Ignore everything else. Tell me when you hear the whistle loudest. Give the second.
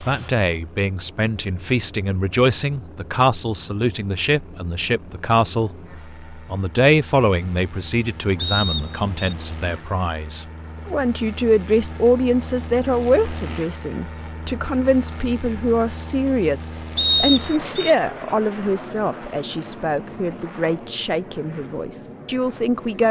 17 s.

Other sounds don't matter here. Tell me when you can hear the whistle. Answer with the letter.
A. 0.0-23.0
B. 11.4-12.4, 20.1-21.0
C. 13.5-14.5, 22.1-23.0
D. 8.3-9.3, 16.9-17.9
D.